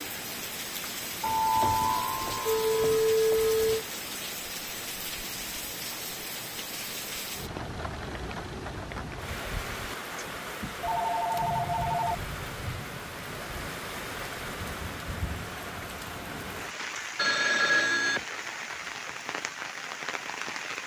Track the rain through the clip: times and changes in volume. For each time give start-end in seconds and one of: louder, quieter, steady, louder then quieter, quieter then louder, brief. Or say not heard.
0.0-20.8 steady.